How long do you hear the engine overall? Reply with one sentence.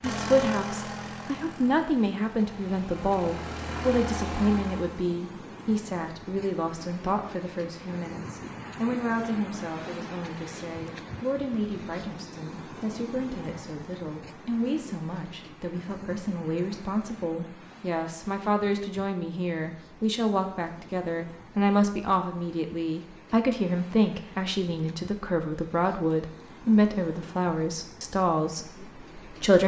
The engine can be heard for 5 seconds in total.